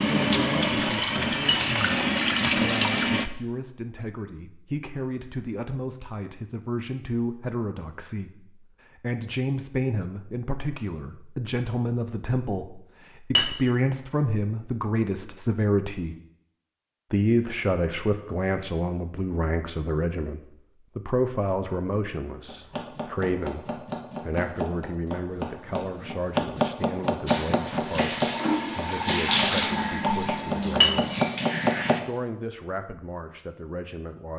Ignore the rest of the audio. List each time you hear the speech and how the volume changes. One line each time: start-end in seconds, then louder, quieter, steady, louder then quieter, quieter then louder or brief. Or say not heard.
0.0-16.1 louder
17.1-31.1 quieter
31.9-34.3 brief.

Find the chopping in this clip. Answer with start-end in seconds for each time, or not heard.
22.4-31.9.